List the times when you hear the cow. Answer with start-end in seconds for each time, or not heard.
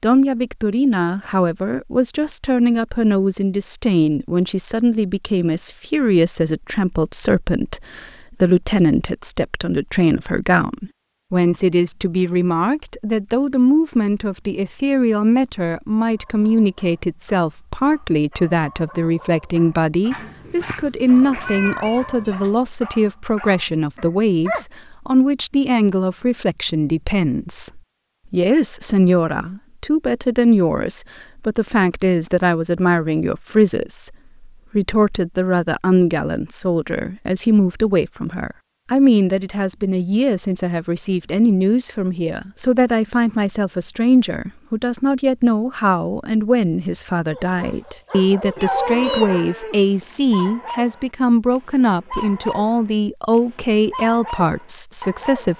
48.5-49.9.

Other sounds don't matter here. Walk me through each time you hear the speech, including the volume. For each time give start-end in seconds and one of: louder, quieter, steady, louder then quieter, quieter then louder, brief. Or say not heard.
0.0-55.5 steady.